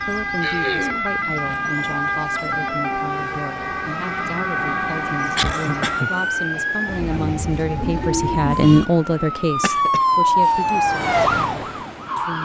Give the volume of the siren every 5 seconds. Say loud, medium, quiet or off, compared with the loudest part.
medium, medium, loud.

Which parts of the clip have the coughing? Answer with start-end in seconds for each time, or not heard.
0.4-1.1, 5.3-6.1, 9.5-10.6.